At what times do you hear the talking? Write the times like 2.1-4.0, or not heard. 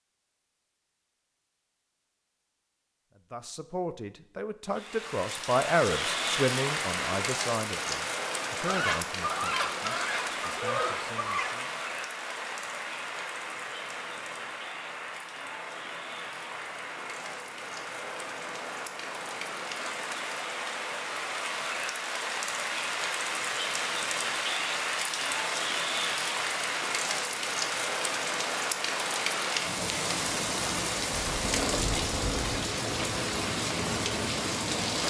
3.1-11.8.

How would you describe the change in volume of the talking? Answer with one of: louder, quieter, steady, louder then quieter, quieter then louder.
louder then quieter.